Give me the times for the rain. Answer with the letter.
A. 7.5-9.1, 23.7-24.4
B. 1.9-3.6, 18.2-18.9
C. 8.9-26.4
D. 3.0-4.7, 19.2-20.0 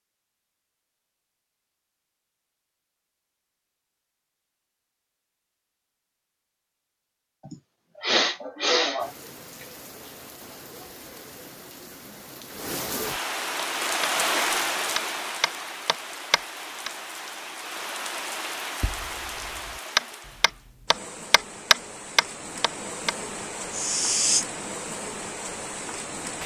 C.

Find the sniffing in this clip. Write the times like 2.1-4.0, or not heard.
7.5-9.1, 23.7-24.4.